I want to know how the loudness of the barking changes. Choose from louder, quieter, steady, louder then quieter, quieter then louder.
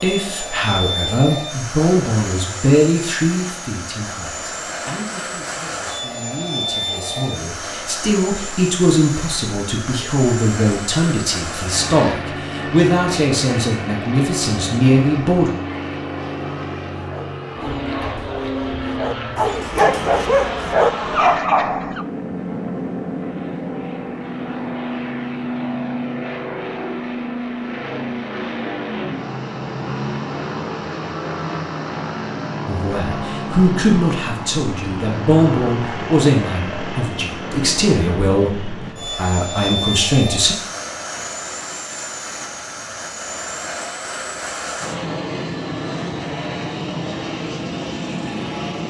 louder.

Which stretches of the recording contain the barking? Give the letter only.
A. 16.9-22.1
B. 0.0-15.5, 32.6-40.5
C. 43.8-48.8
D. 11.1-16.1
A.